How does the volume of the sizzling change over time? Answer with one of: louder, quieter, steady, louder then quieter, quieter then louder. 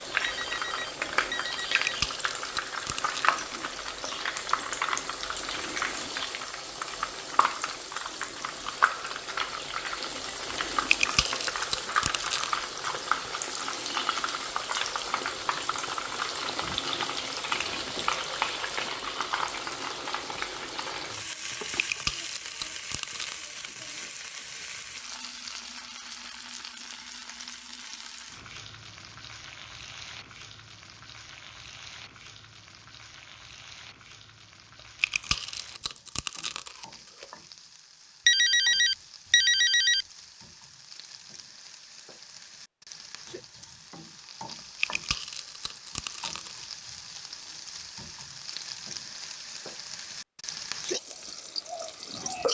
quieter then louder.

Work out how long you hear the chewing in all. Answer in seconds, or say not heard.
9 s.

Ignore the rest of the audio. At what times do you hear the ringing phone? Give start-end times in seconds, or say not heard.
0.2-1.9, 38.2-40.0.